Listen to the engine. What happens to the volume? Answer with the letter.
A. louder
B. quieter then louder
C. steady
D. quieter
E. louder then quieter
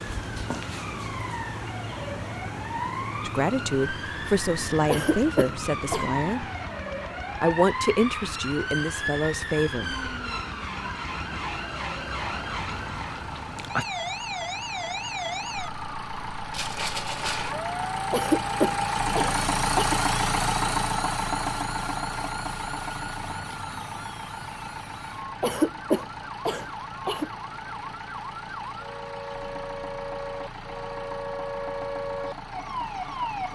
E.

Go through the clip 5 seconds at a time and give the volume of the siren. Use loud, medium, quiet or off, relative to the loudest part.
loud, loud, loud, loud, medium, medium, loud.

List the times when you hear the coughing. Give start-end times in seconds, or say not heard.
4.8-6.0, 18.1-20.0, 25.4-27.3.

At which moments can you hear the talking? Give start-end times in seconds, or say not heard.
3.2-6.5, 7.4-9.9.